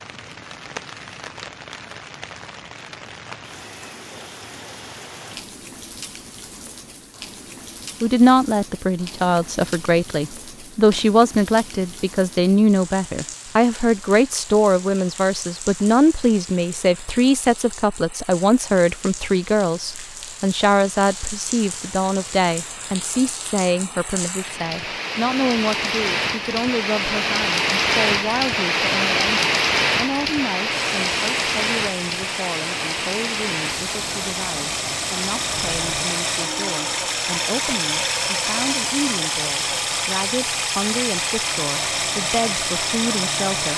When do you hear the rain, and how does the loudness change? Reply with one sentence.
The rain can be heard from 0.0 to 36.0 s, getting louder.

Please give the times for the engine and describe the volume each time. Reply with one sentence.
The engine can be heard from 30.8 to 43.7 s, getting louder.